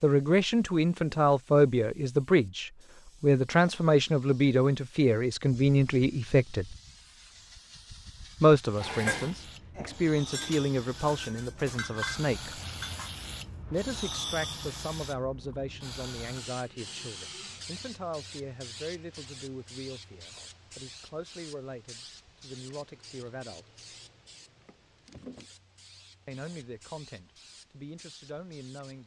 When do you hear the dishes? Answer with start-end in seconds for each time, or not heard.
8.8-13.2.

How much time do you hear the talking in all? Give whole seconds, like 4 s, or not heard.
24 s.